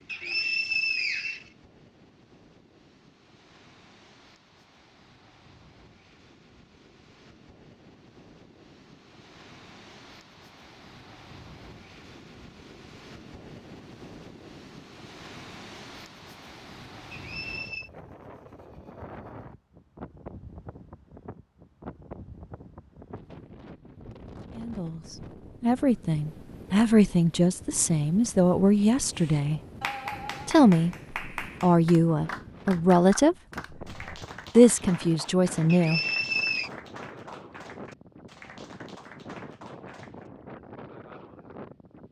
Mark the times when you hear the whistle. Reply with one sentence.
The whistle can be heard from 0.1 to 1.4 s, from 17.1 to 17.9 s and from 35.7 to 36.7 s.